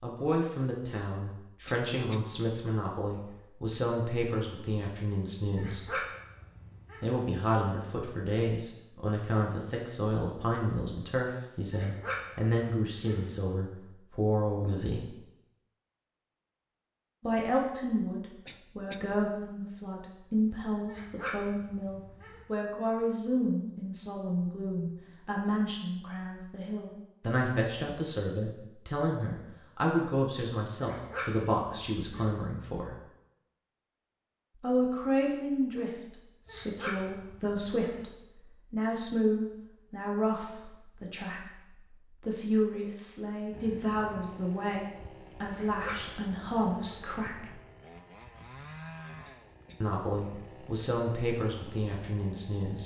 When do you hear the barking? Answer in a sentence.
The barking can be heard from 5.5 to 7.1 s, from 11.7 to 13.3 s, from 20.9 to 22.4 s, from 30.8 to 32.4 s, from 36.5 to 38.0 s and from 45.5 to 47.0 s.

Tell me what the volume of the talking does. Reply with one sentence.
The loudness of the talking stays about the same.